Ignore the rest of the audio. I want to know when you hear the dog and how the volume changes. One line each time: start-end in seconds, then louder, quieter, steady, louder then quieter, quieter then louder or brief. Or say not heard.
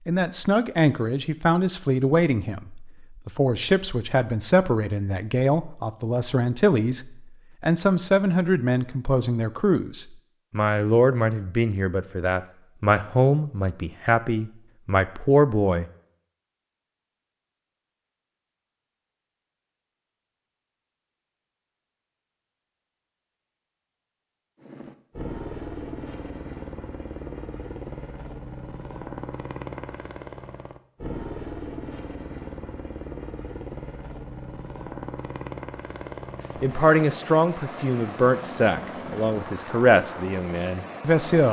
not heard.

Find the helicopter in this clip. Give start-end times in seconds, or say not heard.
24.6-41.4.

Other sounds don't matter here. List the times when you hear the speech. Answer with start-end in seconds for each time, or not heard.
0.1-15.8, 36.6-41.4.